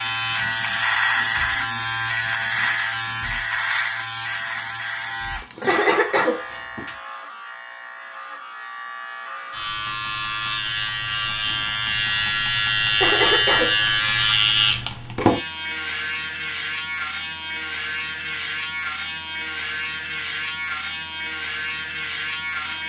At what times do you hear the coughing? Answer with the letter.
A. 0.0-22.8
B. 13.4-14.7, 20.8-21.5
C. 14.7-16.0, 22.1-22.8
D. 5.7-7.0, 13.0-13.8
D.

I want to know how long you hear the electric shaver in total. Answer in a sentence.
You can hear the electric shaver for 23 seconds altogether.